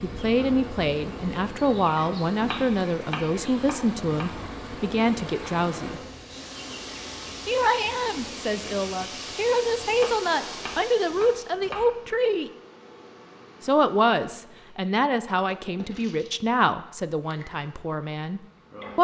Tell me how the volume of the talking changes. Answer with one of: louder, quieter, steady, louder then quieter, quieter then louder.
steady.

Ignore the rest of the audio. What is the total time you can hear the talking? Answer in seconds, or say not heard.
16 s.